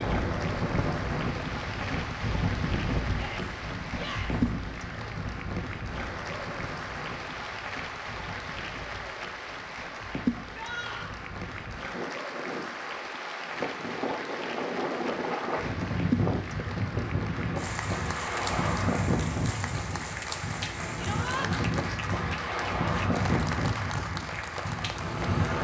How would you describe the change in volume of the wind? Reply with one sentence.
The volume of the wind goes down, then up.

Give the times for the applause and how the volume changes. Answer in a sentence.
The applause can be heard from 0.0 to 25.5 s, at a steady volume.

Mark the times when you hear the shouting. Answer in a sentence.
You can hear the shouting from 3.1 to 4.4 s, from 10.5 to 11.2 s and from 21.0 to 21.4 s.